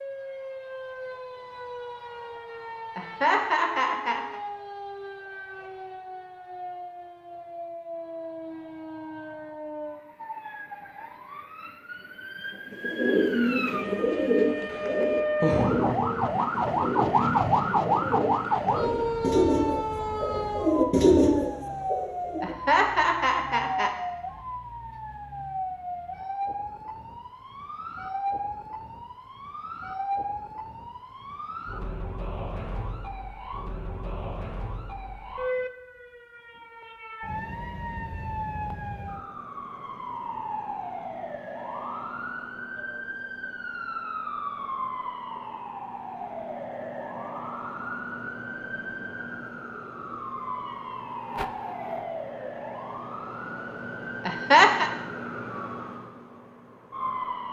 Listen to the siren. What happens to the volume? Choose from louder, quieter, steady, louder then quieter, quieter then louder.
louder then quieter.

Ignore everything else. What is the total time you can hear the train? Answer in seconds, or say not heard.
not heard.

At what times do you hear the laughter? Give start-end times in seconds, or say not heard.
3.0-4.4, 22.4-23.9, 54.2-54.9.